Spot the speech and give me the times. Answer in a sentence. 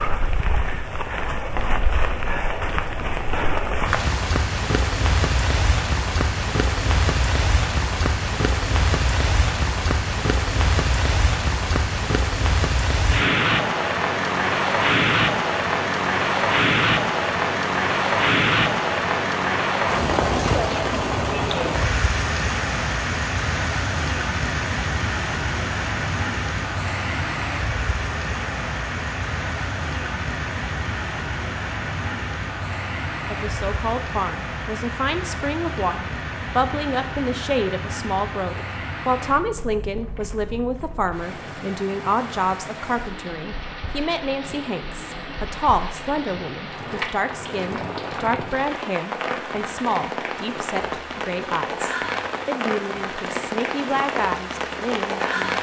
The speech can be heard from 33.2 to 55.5 s.